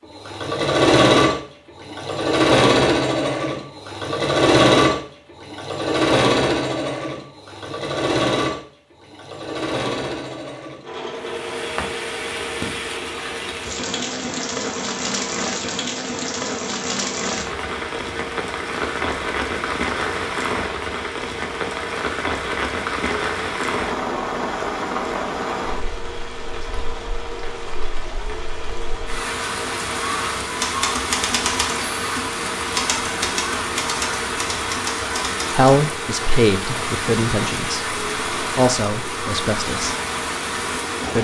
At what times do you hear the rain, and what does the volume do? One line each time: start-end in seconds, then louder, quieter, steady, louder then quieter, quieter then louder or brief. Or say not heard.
11.2-41.1 steady.